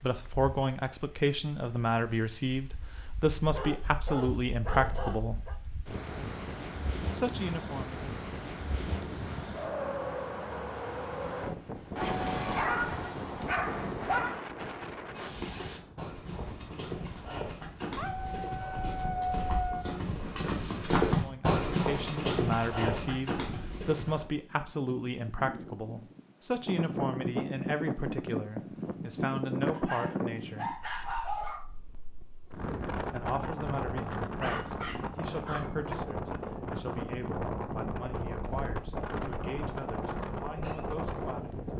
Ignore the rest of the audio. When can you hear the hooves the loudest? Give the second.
21 s.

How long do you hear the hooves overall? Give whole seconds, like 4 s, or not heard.
9 s.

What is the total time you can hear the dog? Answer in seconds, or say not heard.
10 s.